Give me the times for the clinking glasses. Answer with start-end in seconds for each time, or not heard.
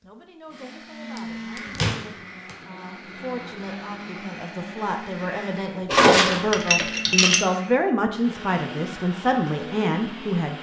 1.1-1.8, 5.8-7.5.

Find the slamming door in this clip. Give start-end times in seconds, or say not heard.
1.8-2.5.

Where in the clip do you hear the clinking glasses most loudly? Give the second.
6 s.